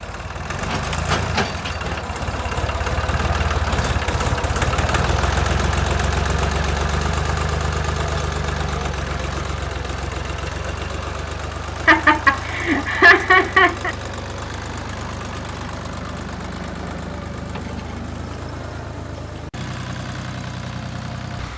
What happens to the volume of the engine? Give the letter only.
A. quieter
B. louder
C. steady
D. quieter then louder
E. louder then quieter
A.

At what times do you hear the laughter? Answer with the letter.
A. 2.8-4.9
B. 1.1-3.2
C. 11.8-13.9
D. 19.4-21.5
C.